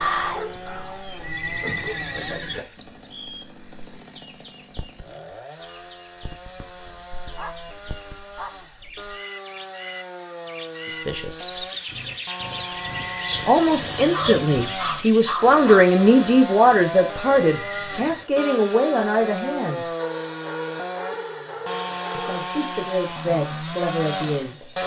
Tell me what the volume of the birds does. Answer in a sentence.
The loudness of the birds goes down, then up.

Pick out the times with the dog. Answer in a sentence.
You can hear the dog from 0.3 to 1.9 s, from 6.3 to 9.2 s, from 14.1 to 15.9 s and from 19.9 to 22.5 s.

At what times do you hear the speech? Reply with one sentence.
You can hear the speech from 10.9 to 11.6 s, from 13.4 to 19.9 s and from 22.1 to 24.6 s.